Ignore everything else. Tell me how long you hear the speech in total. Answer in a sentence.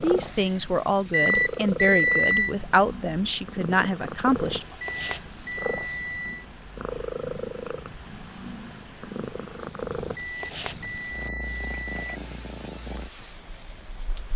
The speech can be heard for 5 seconds in total.